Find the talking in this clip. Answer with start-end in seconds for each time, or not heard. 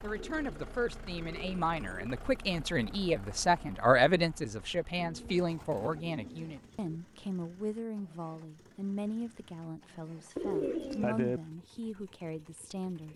0.0-13.1.